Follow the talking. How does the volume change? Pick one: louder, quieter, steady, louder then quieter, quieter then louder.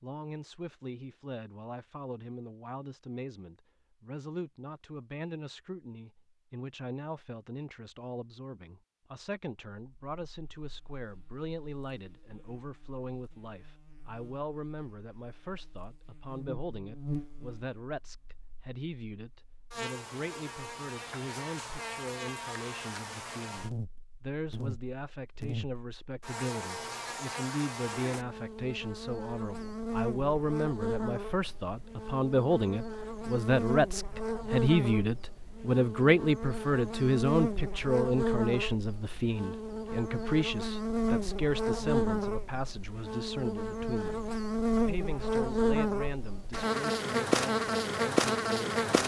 louder then quieter.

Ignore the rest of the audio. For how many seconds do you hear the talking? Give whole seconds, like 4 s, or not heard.
49 s.